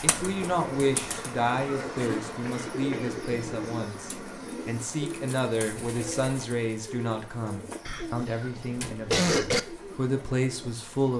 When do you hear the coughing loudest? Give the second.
9 s.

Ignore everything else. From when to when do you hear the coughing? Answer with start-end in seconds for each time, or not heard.
1.6-3.1, 7.8-9.6.